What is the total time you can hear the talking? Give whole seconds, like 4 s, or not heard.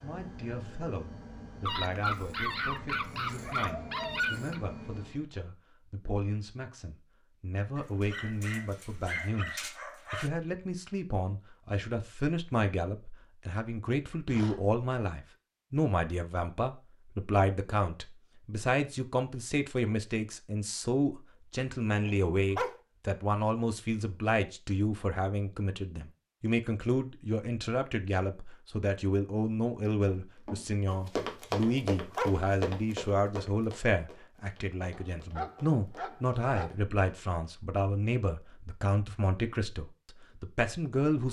41 s.